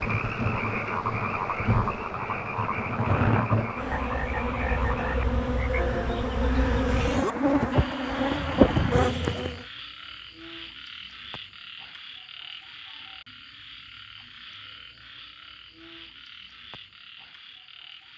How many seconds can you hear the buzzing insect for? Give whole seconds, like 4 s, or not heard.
10 s.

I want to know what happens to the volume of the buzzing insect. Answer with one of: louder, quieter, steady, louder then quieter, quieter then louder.
louder.